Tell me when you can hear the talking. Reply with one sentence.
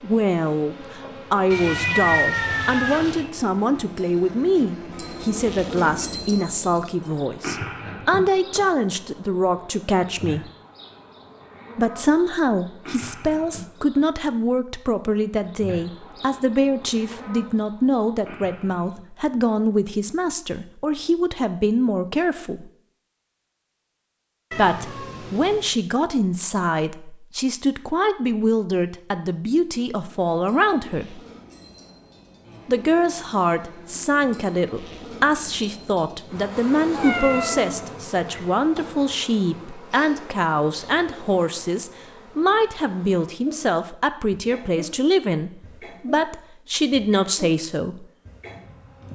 The talking can be heard from 0.0 to 10.5 s, from 11.8 to 22.7 s, from 24.5 to 31.2 s and from 32.6 to 48.1 s.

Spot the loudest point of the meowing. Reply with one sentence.
The volume of the meowing peaks at 2 seconds.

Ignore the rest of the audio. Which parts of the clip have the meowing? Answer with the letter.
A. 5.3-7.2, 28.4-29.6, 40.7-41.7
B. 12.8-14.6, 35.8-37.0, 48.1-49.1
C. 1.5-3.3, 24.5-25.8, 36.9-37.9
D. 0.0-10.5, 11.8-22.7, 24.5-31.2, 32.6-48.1
C.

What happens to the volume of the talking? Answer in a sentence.
The volume of the talking stays about the same.